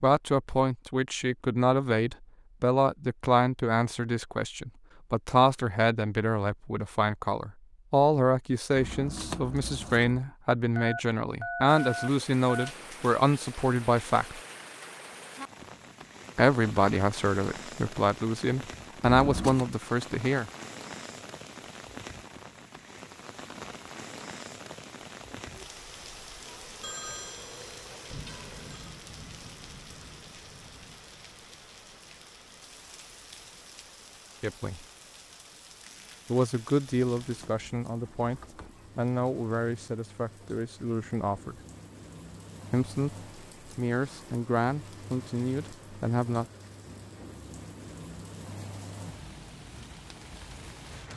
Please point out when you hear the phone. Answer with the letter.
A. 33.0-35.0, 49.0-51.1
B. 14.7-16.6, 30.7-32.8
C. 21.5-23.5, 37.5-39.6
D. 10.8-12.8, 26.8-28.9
D.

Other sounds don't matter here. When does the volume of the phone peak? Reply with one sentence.
The volume of the phone peaks at 12 seconds.